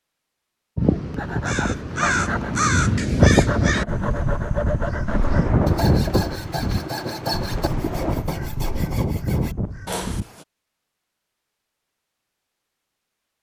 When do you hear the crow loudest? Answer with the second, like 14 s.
3 s.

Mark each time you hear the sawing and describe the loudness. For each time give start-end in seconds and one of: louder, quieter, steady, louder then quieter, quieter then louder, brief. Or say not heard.
1.1-10.4 steady.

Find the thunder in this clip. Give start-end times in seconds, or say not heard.
5.0-8.3.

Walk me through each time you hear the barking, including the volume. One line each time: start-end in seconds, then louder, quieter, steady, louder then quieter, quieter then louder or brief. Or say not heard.
not heard.